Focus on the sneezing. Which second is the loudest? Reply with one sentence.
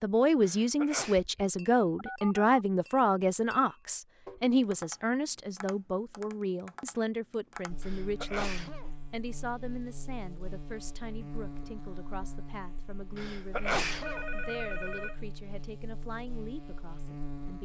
The loudest moment of the sneezing is at 14 seconds.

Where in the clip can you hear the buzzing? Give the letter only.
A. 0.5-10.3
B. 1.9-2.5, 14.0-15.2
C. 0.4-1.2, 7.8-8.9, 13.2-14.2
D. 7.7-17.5
D.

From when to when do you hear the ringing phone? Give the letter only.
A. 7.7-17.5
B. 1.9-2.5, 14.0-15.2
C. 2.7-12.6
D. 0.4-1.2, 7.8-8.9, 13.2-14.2
B.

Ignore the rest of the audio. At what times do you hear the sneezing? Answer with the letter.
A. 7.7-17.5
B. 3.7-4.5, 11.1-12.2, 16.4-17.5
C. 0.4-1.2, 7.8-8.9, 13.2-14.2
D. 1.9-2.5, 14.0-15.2
C.